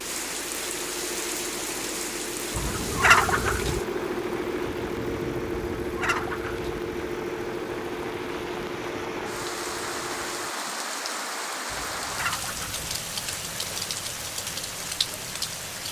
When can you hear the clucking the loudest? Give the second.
3 s.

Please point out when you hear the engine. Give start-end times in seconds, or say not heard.
0.0-10.6.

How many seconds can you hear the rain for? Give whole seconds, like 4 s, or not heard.
16 s.